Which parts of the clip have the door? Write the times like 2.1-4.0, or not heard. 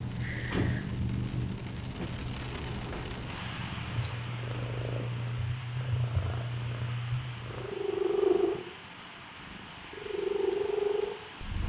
0.0-0.9.